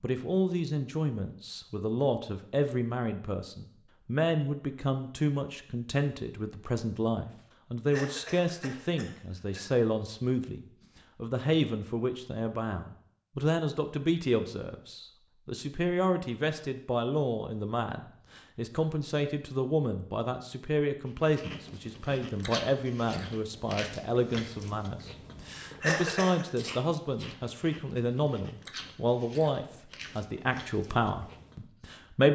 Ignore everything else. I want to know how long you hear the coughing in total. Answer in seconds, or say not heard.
2 s.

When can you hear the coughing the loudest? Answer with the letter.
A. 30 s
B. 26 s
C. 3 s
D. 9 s
B.